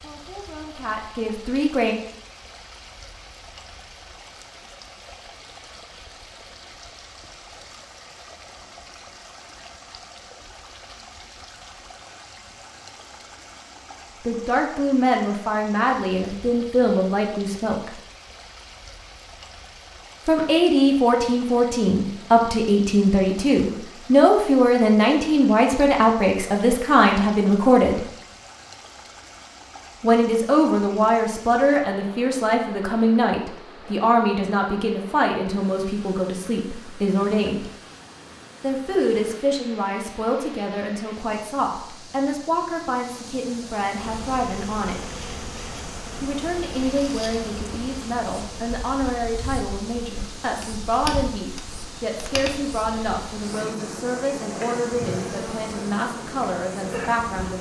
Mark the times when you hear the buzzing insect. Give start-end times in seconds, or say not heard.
44.0-57.5.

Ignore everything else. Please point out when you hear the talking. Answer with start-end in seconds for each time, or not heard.
0.0-1.9, 14.2-18.0, 20.2-28.1, 30.0-37.7, 38.6-45.1, 46.2-57.5.